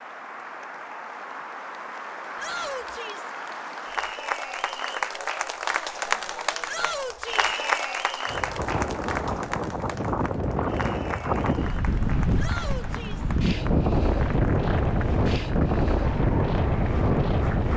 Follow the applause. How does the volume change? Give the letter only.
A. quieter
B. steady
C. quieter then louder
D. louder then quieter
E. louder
D.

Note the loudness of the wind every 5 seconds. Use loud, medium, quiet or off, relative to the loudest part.
off, medium, loud, loud.